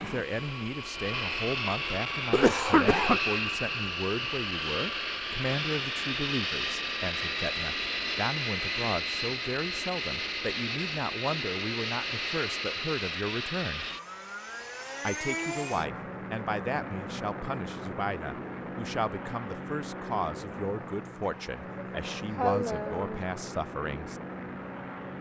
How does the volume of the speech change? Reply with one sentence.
The volume of the speech stays about the same.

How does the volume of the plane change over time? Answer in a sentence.
The volume of the plane goes down.